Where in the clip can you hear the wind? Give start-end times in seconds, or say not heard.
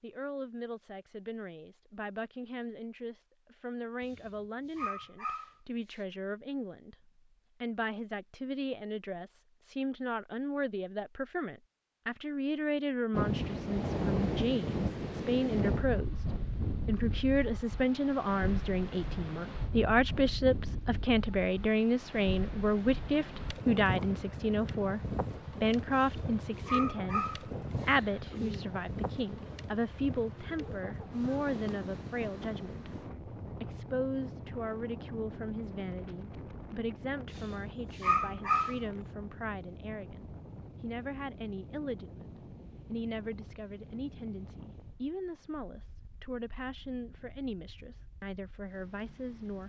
13.1-49.6.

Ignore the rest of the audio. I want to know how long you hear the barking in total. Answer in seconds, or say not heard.
6 s.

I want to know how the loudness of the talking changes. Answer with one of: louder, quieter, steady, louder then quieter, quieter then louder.
louder then quieter.